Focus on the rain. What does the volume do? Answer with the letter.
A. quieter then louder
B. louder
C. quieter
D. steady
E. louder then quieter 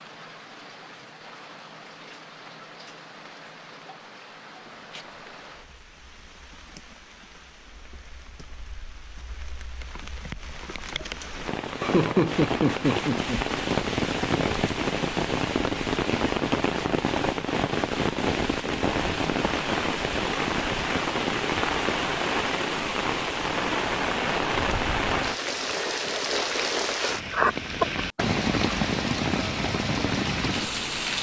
B.